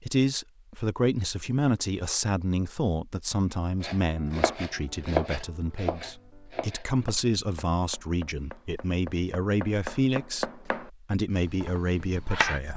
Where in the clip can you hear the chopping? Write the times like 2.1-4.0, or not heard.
3.8-12.6.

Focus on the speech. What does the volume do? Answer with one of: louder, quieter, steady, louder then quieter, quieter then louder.
steady.